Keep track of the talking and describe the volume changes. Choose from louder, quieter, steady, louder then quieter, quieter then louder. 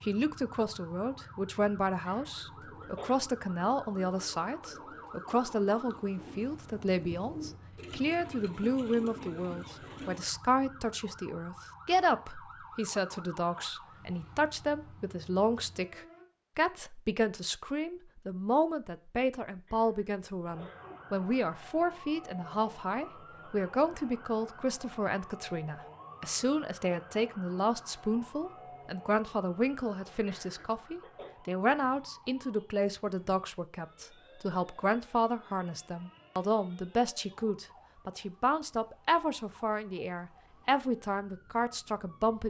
steady.